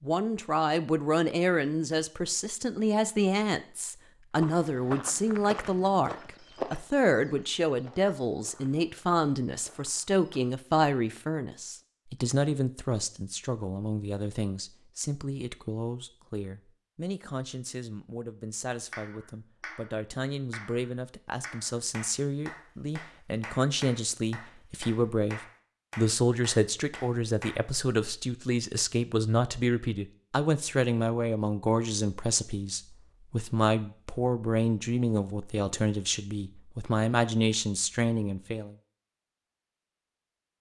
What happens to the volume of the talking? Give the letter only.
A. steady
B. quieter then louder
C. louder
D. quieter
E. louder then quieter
B.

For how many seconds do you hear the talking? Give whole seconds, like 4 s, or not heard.
39 s.